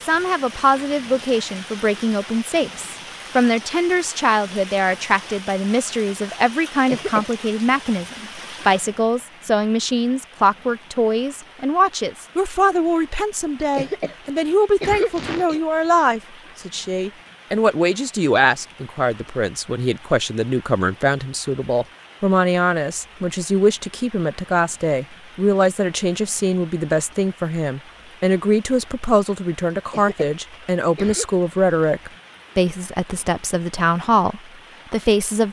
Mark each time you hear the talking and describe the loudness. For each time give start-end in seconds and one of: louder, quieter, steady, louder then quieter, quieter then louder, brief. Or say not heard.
0.0-35.4 steady.